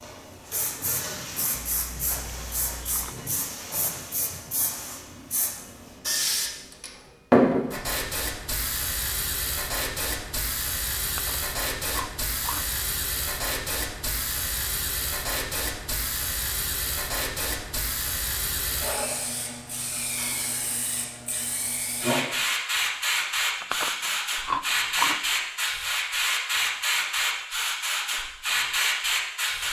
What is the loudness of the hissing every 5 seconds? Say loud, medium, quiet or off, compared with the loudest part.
medium, loud, medium, medium, loud, loud.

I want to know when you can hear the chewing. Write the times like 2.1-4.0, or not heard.
1.5-3.1, 11.1-12.7, 23.6-25.7.